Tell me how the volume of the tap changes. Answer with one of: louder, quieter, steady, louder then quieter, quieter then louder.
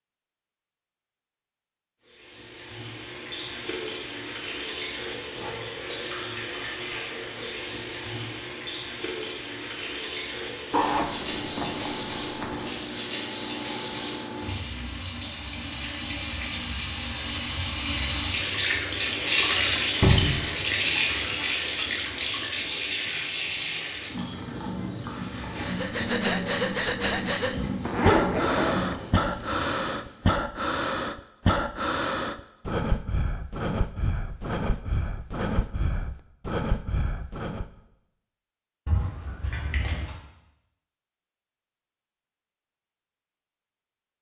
louder then quieter.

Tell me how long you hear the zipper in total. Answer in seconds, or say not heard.
3 s.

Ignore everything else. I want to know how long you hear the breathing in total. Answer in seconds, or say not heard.
12 s.